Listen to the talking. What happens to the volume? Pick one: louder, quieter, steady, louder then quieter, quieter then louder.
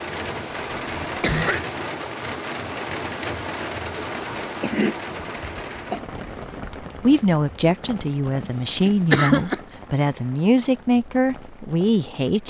steady.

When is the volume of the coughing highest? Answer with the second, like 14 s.
9 s.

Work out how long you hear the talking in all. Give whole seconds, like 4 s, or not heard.
6 s.